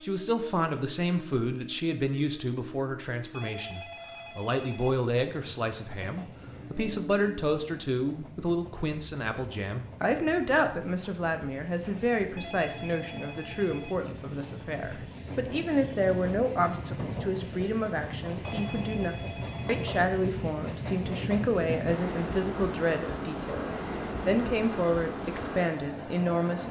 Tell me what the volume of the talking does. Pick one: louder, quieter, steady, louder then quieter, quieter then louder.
steady.